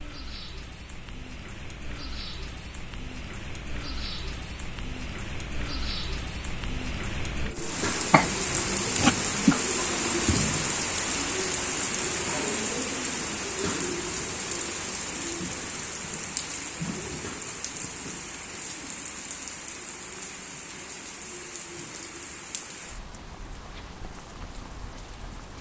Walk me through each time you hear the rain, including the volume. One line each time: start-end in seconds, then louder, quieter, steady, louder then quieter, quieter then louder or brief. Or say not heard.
0.0-25.5 louder then quieter.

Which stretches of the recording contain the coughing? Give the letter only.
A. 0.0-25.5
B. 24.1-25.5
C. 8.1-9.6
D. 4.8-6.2
C.